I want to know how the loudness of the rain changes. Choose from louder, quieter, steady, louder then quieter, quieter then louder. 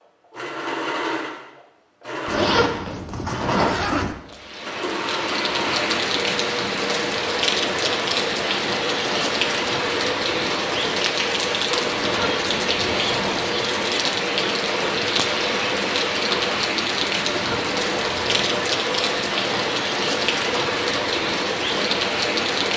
steady.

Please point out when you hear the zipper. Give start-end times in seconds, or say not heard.
2.2-4.2, 11.9-13.5, 17.2-18.5.